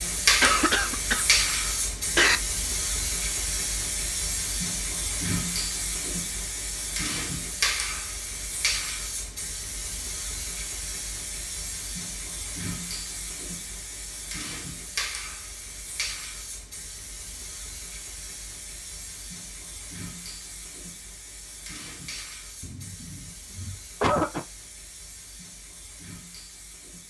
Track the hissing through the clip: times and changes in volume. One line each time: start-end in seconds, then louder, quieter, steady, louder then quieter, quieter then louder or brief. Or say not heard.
0.0-27.0 quieter.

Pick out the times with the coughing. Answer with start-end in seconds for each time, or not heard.
0.4-2.4, 22.6-24.4.